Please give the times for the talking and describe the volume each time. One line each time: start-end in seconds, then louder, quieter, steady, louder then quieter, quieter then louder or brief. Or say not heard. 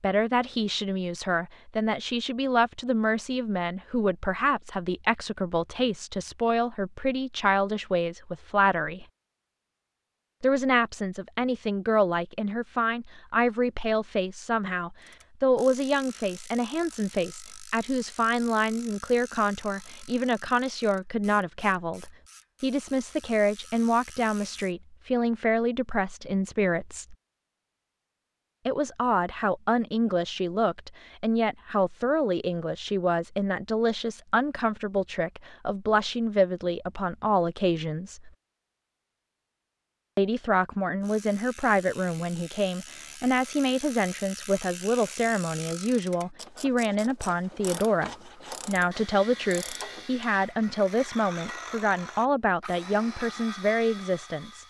0.0-9.1 steady
10.4-27.1 steady
28.6-38.3 steady
40.1-54.6 steady.